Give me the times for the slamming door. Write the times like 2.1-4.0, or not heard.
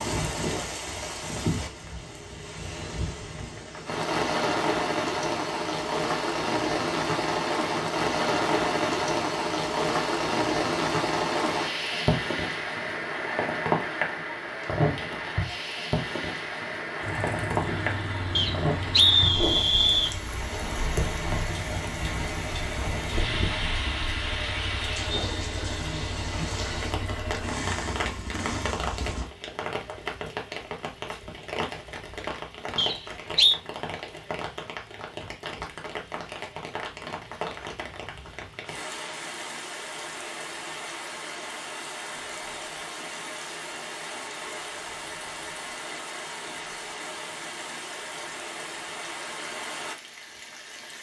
not heard.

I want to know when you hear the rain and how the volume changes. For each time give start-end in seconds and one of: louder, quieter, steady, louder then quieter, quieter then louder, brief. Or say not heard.
0.0-50.9 quieter.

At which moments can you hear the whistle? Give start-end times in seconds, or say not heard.
18.4-20.1, 32.8-33.6.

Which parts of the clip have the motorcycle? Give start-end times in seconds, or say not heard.
17.0-29.3.